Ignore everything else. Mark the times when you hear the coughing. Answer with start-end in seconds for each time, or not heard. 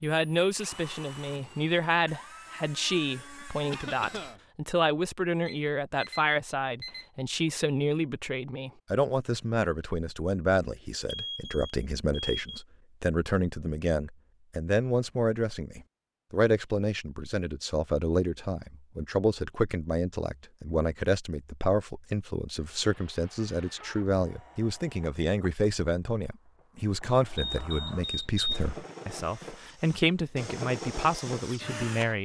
3.7-4.4.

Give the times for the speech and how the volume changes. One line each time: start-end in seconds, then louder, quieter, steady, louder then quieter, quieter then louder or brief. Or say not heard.
0.0-32.2 steady.